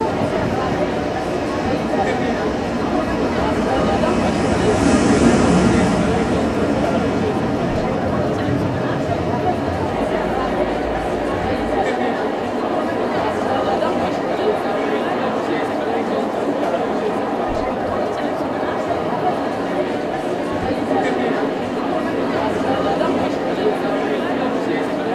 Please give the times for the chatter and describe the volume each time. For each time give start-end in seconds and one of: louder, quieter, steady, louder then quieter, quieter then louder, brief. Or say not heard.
0.0-25.1 steady.